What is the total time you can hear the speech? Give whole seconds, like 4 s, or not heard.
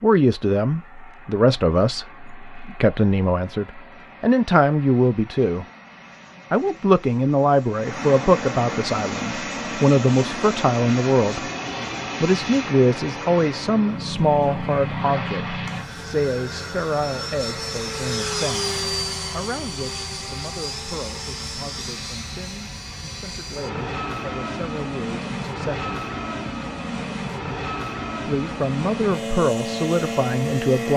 27 s.